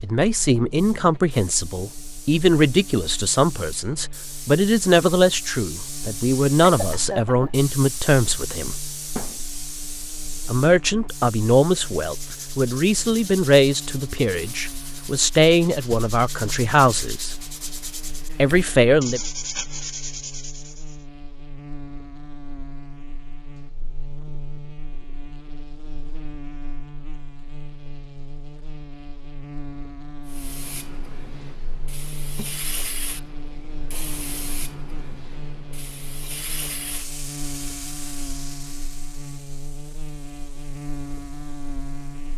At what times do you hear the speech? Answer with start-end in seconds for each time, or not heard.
0.0-8.8, 10.4-17.4, 18.4-19.2.